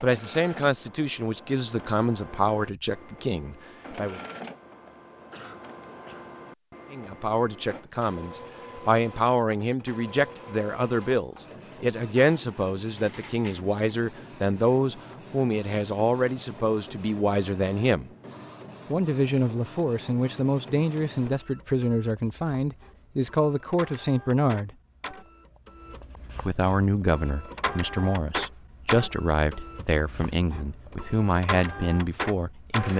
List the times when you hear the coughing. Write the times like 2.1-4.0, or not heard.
5.3-6.3.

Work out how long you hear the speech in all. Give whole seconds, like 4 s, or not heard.
28 s.